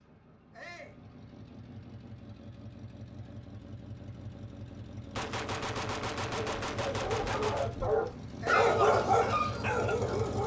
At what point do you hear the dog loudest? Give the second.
9 s.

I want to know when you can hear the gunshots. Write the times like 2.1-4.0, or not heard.
5.2-7.8.